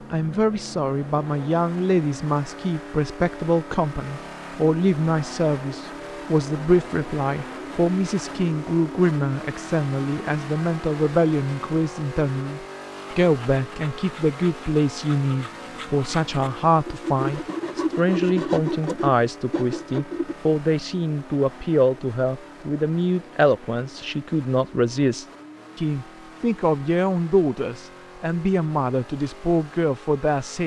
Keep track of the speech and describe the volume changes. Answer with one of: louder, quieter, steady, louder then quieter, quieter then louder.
steady.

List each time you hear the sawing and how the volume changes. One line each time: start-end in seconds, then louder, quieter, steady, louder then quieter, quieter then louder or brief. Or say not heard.
13.1-20.4 louder.